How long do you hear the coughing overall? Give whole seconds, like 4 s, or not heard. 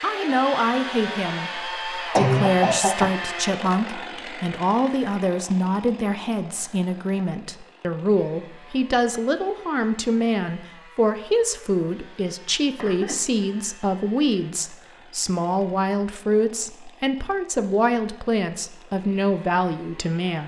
2 s.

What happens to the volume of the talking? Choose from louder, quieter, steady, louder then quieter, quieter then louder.
steady.